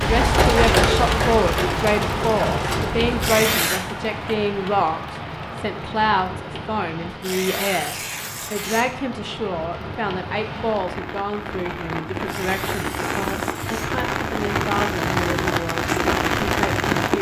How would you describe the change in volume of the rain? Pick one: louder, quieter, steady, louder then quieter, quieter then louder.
quieter then louder.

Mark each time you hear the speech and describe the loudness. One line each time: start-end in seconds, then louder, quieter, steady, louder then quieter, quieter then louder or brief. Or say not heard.
0.0-16.9 quieter.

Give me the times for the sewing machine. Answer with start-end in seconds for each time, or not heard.
0.0-3.0.